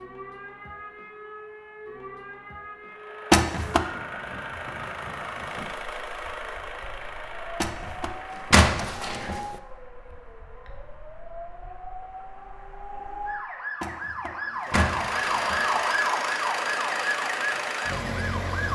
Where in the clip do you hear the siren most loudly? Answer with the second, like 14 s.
16 s.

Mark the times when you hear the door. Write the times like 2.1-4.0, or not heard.
3.3-3.9, 7.6-9.4, 13.8-15.7.